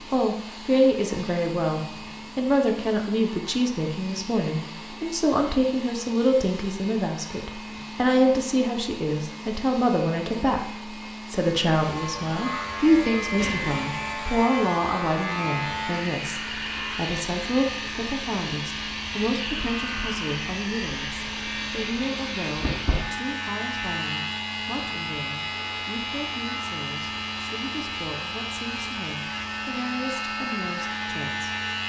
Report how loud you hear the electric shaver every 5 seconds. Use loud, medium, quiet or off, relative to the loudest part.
off, off, loud, loud, loud, loud, loud.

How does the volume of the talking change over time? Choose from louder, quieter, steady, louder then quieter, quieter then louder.
quieter.